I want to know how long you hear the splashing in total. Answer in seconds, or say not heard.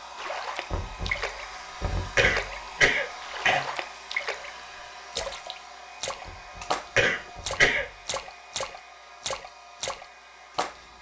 10 s.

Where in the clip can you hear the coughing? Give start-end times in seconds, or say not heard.
2.1-3.6, 7.0-7.8.